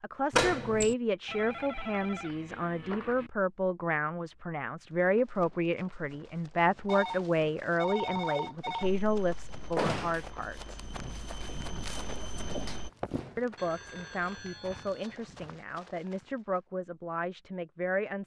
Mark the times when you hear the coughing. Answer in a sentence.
You can't hear the coughing here.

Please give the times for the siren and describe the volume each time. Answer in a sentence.
You can't hear the siren here.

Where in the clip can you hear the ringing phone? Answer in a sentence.
The ringing phone can be heard from 1.2 to 3.3 s, from 6.8 to 8.9 s and from 13.6 to 15.2 s.